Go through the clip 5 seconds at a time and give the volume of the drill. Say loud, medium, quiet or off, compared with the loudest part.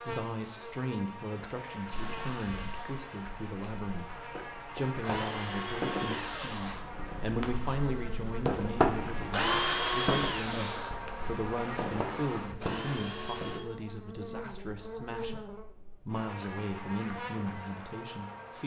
quiet, loud, loud, off.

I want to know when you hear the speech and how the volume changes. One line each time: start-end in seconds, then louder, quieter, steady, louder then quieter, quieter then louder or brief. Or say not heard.
0.1-18.6 steady.